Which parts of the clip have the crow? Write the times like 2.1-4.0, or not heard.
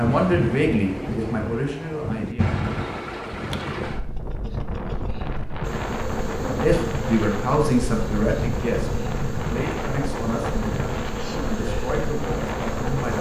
not heard.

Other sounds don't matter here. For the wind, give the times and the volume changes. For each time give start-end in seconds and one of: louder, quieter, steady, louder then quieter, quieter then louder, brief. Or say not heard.
0.0-13.1 steady.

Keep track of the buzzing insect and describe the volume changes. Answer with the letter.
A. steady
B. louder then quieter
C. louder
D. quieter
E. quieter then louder
A.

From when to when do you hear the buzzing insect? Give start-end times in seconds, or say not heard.
5.6-13.1.